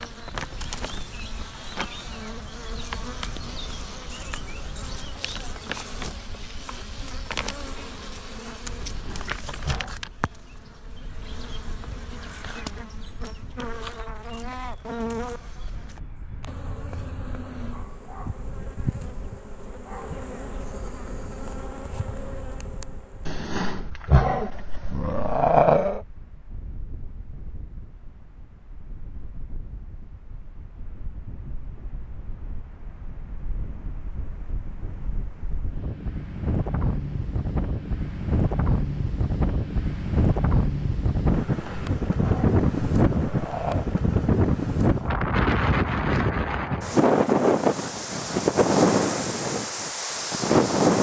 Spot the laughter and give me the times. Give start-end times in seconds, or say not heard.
not heard.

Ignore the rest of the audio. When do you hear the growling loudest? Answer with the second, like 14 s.
26 s.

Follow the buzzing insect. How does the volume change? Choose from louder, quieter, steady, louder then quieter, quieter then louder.
steady.